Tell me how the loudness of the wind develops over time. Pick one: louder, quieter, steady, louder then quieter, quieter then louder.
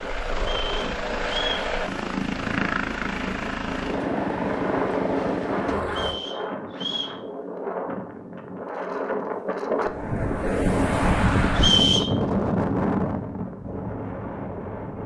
louder.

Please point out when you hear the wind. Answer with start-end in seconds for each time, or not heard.
0.0-15.0.